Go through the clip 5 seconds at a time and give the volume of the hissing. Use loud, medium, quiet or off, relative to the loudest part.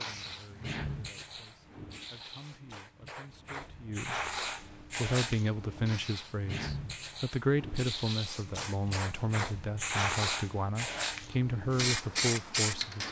medium, medium, loud.